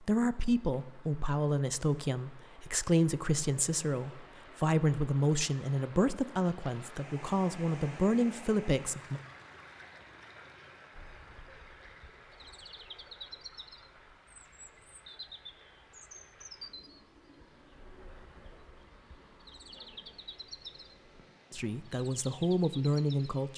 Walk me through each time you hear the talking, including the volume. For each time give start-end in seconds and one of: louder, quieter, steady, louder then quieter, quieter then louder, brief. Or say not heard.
0.0-9.2 steady
21.5-23.5 brief.